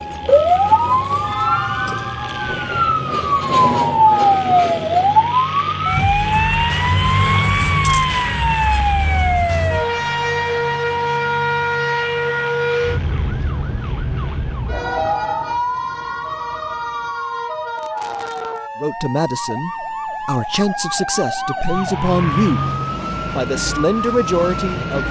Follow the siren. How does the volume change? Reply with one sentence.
The loudness of the siren goes down.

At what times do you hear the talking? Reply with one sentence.
The talking can be heard from 18.8 to 22.7 s and from 23.4 to 25.0 s.